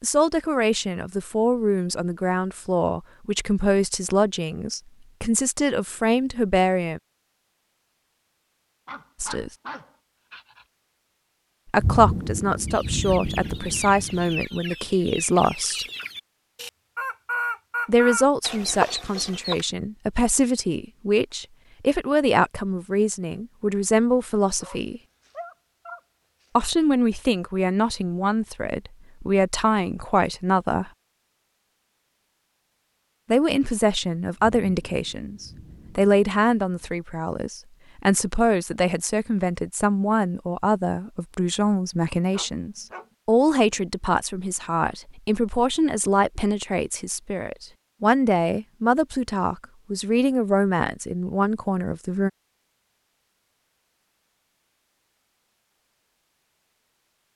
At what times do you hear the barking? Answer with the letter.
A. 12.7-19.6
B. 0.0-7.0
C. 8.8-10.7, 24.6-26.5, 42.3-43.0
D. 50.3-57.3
C.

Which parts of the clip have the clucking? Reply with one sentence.
The clucking can be heard from 12.7 to 19.6 s.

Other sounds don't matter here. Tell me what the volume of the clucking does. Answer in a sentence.
The loudness of the clucking goes up.